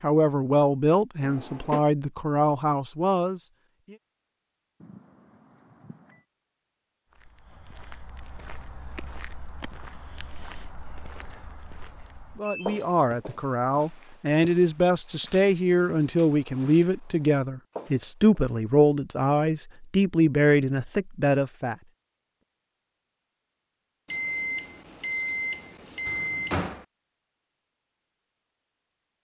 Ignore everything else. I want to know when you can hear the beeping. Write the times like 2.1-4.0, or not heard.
4.8-6.2, 12.4-12.9, 24.1-26.6.